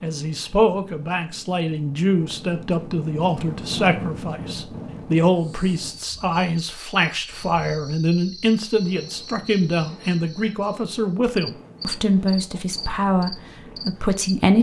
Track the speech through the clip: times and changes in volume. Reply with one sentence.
You can hear the speech from 0.0 to 14.5 s, at a steady volume.